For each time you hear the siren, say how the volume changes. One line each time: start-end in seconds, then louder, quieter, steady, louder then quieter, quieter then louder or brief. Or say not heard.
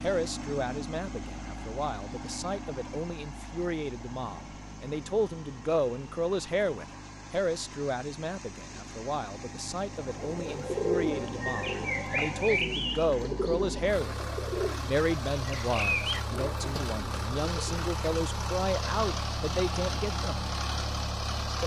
not heard.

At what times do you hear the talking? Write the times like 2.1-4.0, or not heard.
0.0-14.2, 14.8-20.4.